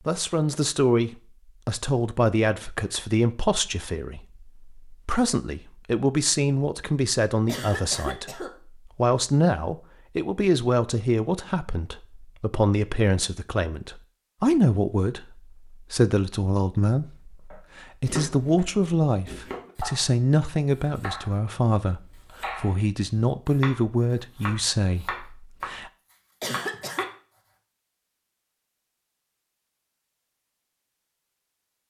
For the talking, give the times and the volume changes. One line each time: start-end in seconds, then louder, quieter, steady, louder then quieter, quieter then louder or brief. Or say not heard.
0.1-25.9 steady.